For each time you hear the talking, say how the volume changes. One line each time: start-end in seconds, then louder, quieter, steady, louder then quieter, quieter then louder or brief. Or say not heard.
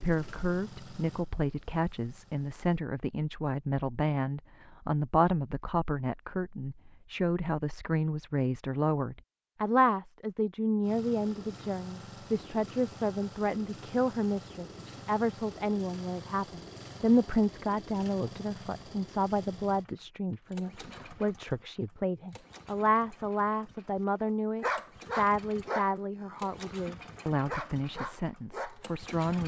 0.0-29.4 steady.